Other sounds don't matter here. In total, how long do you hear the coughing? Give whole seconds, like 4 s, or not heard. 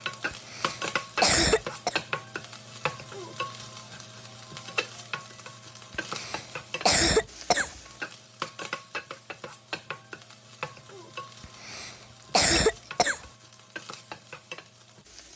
5 s.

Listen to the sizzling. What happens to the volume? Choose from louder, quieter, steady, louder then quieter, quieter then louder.
quieter.